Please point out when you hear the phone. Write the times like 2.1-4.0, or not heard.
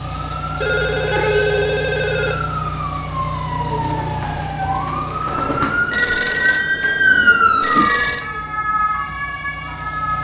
0.6-2.4, 5.9-8.2.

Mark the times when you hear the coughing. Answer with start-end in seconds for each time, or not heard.
not heard.